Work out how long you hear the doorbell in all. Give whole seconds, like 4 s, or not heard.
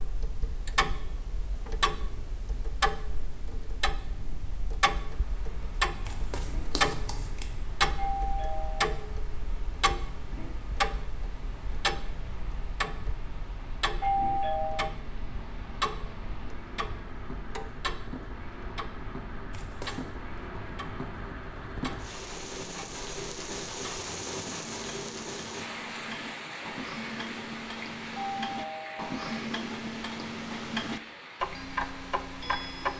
3 s.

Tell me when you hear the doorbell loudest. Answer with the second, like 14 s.
14 s.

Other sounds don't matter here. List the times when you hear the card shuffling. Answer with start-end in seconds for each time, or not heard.
6.0-7.5, 19.5-20.2, 24.1-24.5.